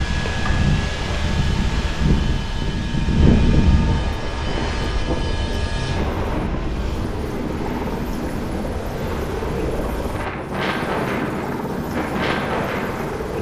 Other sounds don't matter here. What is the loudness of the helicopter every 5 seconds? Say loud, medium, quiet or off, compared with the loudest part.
medium, loud, loud.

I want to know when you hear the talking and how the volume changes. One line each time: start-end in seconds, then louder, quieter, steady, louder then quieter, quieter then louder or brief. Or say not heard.
not heard.